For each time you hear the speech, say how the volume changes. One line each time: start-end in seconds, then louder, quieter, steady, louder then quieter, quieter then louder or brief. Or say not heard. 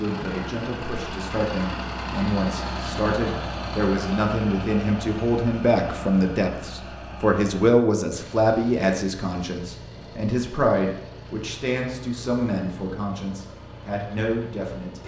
0.0-15.0 louder then quieter.